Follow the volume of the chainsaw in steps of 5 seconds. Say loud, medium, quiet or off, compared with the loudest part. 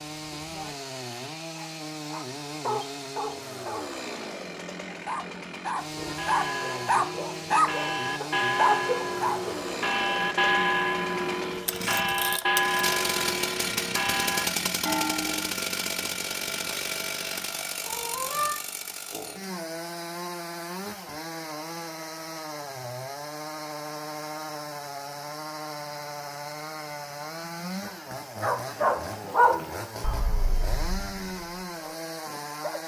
medium, medium, loud, loud, medium, medium, medium.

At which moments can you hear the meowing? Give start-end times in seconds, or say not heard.
17.9-18.6.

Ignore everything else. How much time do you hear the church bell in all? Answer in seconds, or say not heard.
10 s.